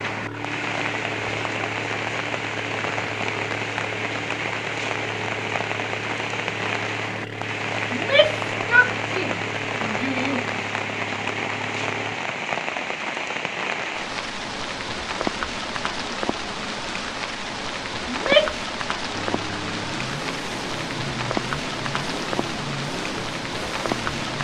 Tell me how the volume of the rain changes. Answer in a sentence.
The loudness of the rain stays about the same.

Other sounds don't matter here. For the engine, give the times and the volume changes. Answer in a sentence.
The engine can be heard from 0.0 to 12.2 s, at a steady volume; and from 19.1 to 24.3 s, at a steady volume.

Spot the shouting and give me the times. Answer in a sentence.
The shouting can be heard from 7.9 to 10.4 s and from 18.1 to 18.6 s.